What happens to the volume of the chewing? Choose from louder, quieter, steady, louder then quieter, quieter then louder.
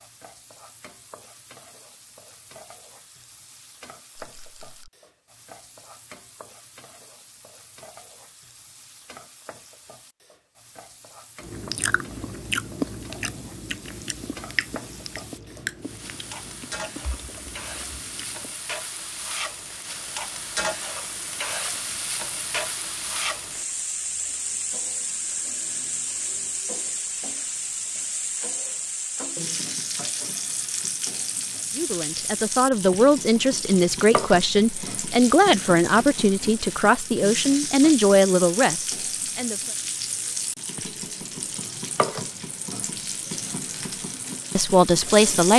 quieter.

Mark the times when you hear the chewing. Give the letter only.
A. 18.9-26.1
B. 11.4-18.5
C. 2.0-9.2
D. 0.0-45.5
B.